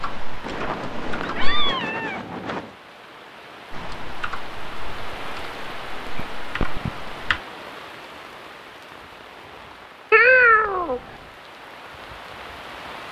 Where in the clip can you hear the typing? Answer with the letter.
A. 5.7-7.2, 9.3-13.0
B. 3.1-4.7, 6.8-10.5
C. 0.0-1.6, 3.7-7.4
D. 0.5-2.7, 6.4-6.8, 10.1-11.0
C.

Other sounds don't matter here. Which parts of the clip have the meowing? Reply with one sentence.
You can hear the meowing from 0.5 to 2.7 s, from 6.4 to 6.8 s and from 10.1 to 11.0 s.